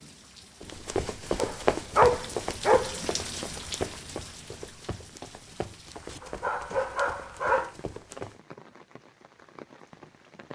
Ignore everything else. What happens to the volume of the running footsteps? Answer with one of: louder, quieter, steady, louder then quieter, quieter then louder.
quieter.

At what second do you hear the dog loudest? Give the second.
2 s.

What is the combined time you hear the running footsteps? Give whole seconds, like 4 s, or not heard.
8 s.